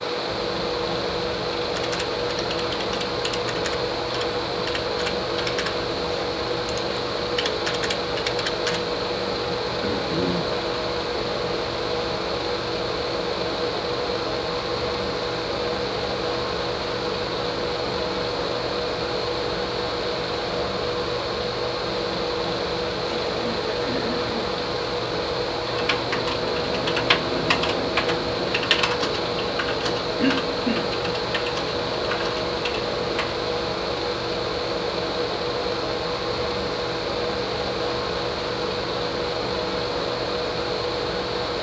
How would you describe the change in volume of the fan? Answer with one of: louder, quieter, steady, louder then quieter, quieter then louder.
steady.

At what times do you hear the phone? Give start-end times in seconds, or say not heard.
not heard.